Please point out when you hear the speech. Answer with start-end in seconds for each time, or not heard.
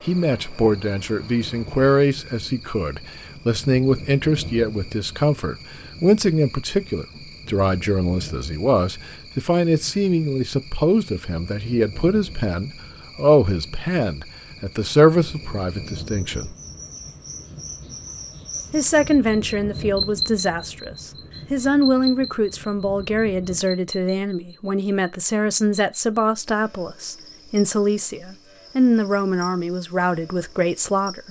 0.1-16.6, 18.7-31.2.